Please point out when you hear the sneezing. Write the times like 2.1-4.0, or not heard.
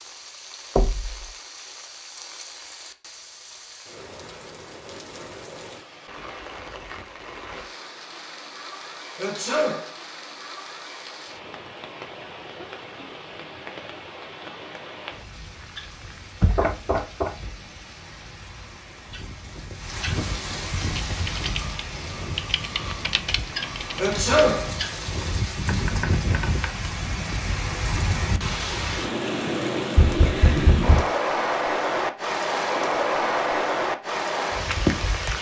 9.2-9.9, 23.9-24.7.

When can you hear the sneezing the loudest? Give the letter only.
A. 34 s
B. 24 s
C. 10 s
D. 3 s
B.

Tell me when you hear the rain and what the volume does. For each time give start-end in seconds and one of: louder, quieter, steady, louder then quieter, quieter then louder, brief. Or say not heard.
0.0-35.3 louder.